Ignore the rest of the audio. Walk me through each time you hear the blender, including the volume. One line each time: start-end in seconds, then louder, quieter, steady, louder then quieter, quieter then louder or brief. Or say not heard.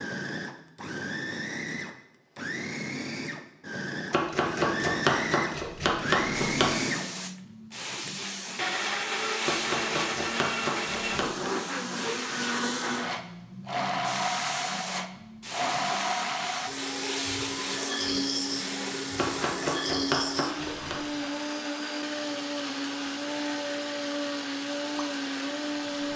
0.0-26.1 steady.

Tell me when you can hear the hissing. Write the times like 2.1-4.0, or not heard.
5.7-19.7.